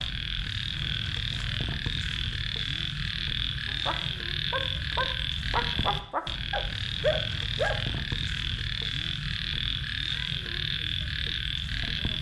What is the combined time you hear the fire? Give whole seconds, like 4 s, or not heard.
not heard.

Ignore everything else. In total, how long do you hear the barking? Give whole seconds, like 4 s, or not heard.
4 s.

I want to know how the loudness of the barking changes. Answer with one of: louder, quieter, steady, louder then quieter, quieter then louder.
louder.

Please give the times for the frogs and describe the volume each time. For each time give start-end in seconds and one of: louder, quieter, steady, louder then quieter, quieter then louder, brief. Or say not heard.
0.0-12.1 steady.